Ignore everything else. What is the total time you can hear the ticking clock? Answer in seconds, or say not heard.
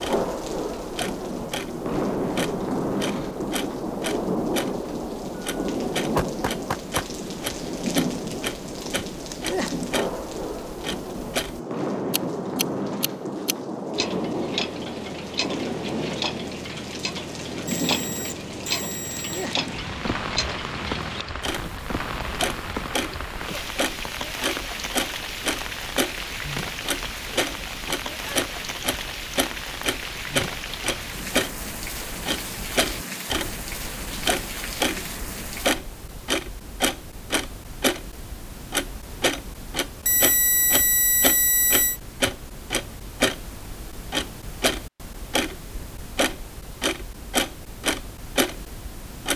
49 s.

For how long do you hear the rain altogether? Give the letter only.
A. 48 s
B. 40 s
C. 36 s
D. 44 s
C.